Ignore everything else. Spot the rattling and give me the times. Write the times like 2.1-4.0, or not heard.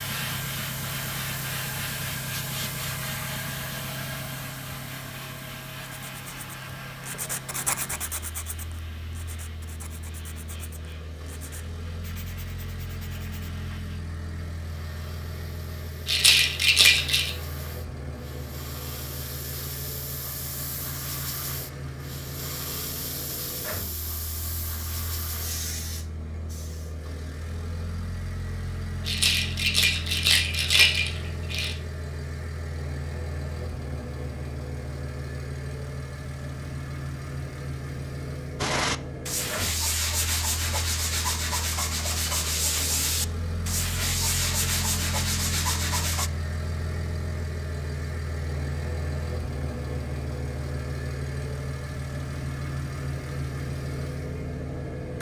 16.1-17.3, 29.1-31.8.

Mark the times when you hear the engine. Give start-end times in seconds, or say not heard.
0.0-55.1.